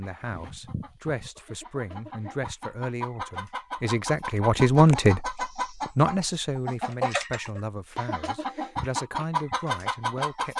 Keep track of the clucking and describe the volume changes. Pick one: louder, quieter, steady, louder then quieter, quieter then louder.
louder.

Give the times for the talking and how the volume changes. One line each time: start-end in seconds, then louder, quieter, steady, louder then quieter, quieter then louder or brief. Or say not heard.
0.0-10.5 louder then quieter.